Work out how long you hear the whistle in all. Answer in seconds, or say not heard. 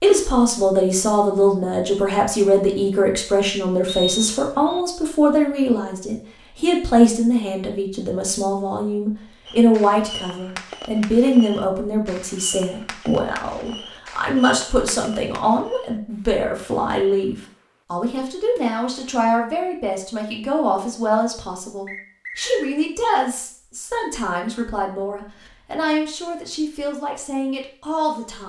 2 s.